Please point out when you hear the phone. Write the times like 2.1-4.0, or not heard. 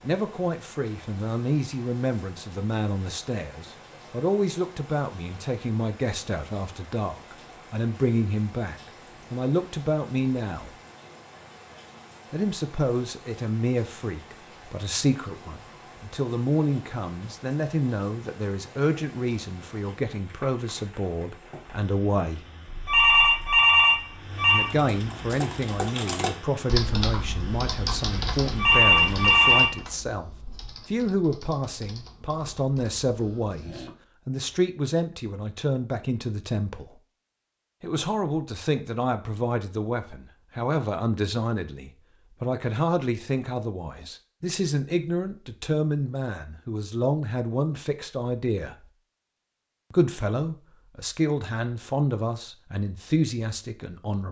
22.6-24.7, 28.4-29.8.